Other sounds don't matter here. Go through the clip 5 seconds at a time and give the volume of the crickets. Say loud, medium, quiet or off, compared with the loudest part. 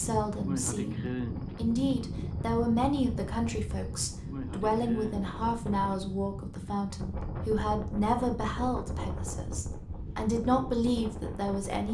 loud, medium, off.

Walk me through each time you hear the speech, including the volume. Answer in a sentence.
The speech can be heard from 0.0 to 11.8 s, at a steady volume.